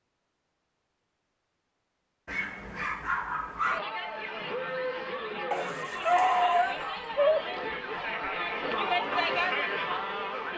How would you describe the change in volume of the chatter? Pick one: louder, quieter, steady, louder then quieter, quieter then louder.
louder.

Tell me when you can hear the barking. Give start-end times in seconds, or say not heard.
2.2-3.8, 5.5-7.5.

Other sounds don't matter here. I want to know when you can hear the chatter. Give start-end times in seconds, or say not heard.
3.6-10.5.